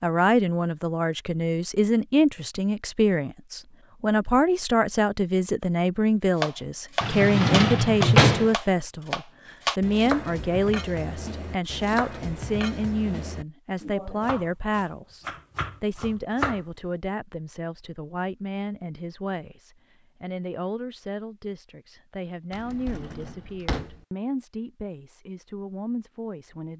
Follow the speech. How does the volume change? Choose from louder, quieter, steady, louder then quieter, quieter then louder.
quieter.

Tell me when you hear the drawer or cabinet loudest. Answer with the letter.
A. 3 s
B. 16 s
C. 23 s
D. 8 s
D.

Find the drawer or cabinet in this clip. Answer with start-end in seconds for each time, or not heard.
7.0-8.6, 22.5-24.0.